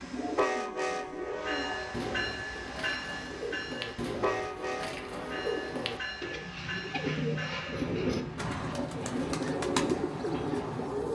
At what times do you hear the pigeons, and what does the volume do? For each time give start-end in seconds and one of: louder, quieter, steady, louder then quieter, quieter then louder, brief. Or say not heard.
0.0-11.0 louder.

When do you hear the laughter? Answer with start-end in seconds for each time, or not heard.
not heard.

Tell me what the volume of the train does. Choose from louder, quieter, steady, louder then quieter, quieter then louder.
quieter.